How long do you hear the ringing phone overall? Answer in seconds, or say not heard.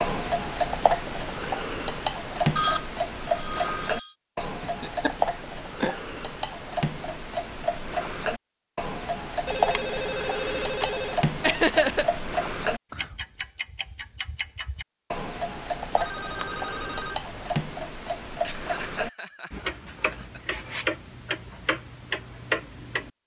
5 s.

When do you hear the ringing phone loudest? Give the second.
3 s.